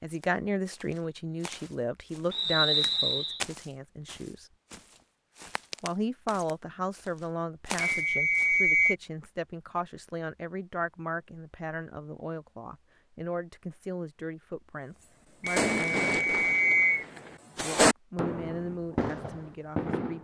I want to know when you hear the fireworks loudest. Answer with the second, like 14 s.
18 s.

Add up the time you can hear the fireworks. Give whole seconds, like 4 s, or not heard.
5 s.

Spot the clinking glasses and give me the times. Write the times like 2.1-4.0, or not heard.
not heard.